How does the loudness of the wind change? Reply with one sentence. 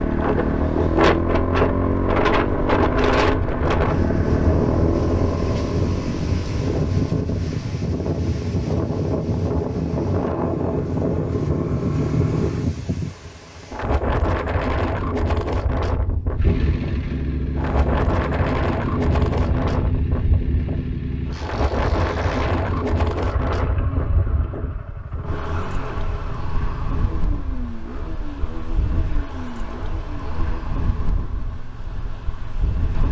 The volume of the wind goes down.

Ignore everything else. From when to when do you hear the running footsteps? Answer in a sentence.
The running footsteps can't be heard in this clip.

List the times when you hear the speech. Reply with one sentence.
The speech can't be heard in this clip.